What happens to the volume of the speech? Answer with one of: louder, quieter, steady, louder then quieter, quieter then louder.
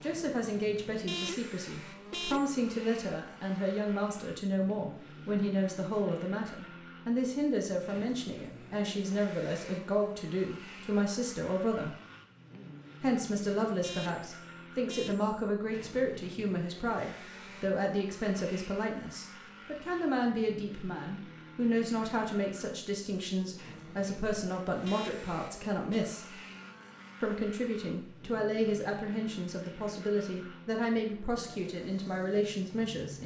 steady.